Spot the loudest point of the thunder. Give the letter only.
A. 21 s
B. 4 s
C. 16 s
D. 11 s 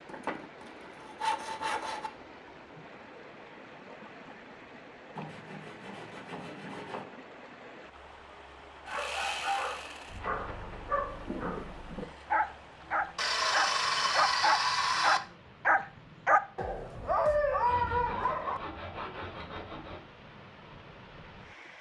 D.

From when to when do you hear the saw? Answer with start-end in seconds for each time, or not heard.
0.1-2.1, 5.2-7.0, 8.8-10.2, 13.2-15.2, 17.6-20.0.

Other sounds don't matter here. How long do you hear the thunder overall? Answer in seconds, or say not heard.
2 s.